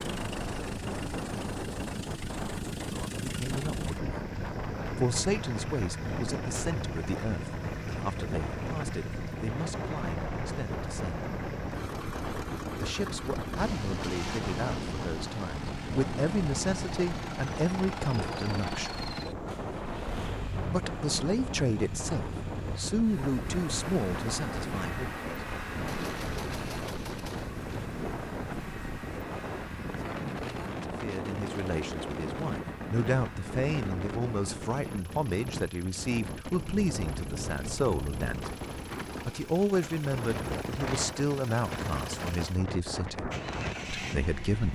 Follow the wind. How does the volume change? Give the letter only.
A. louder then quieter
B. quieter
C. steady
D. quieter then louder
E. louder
C.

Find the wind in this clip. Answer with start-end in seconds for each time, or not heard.
0.0-44.6.